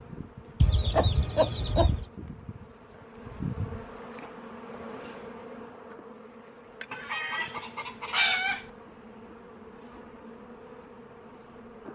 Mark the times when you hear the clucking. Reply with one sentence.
The clucking can be heard from 0.6 to 2.0 s and from 6.9 to 8.7 s.